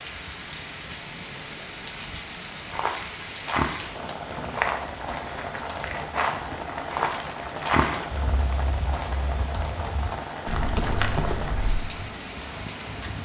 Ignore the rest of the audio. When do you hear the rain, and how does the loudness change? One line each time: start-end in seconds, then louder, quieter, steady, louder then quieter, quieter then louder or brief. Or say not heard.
0.0-13.1 steady.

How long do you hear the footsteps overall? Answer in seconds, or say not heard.
9 s.